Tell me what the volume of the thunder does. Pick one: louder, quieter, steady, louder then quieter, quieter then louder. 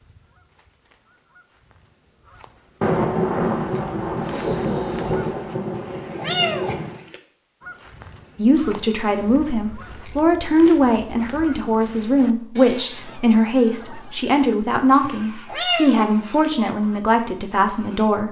quieter.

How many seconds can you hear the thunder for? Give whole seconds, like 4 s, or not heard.
4 s.